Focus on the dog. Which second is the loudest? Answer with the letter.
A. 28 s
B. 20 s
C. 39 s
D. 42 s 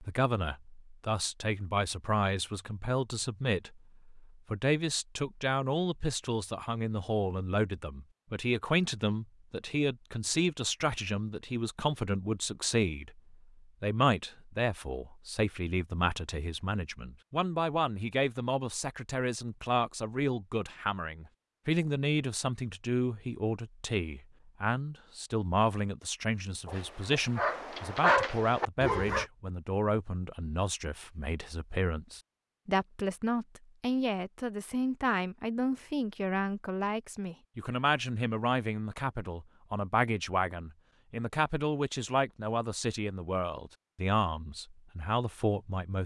A.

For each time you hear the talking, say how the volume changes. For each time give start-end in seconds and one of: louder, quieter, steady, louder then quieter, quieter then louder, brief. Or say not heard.
0.0-46.0 steady.